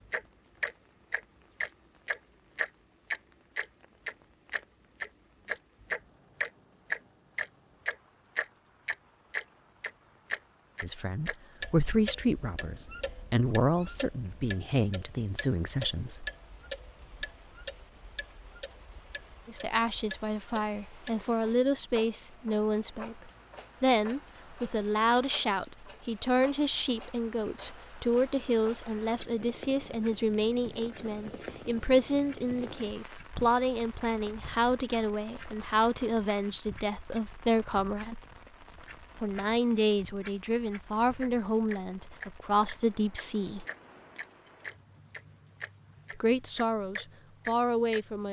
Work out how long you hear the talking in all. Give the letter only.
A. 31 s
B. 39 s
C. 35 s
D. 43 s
A.